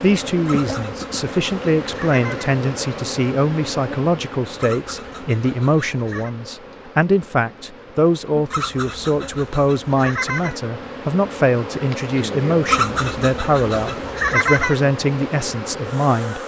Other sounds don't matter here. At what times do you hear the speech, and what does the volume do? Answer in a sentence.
You can hear the speech from 0.0 to 16.4 s, at a steady volume.